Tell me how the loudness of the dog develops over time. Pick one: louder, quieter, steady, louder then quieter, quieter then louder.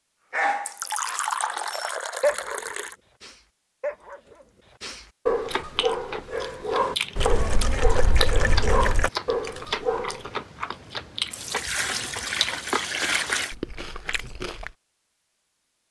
quieter then louder.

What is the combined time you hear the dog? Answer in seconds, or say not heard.
10 s.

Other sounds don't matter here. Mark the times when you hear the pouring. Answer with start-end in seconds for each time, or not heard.
0.7-3.0, 7.2-9.1, 11.3-13.6.